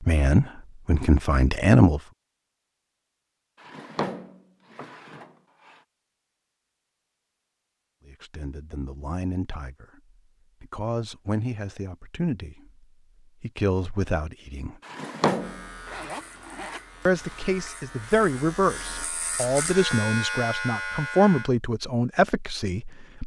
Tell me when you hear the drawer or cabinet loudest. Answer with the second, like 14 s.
15 s.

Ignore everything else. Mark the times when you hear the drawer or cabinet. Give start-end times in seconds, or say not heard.
3.6-5.8, 14.8-15.7.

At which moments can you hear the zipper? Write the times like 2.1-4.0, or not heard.
15.8-17.5.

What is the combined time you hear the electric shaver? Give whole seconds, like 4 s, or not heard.
6 s.